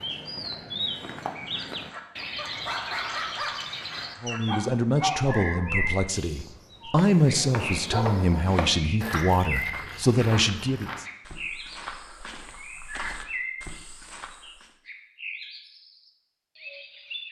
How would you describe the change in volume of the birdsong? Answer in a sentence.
The loudness of the birdsong goes down.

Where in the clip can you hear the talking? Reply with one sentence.
The talking can be heard from 4.2 to 11.1 s.